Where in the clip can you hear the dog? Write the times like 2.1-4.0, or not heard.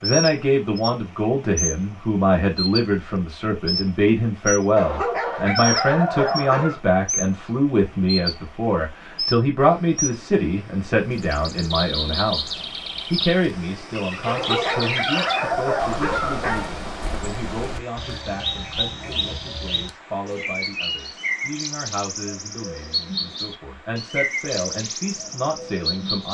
4.8-6.8, 14.2-16.7.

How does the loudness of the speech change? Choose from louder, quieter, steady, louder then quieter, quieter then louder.
quieter.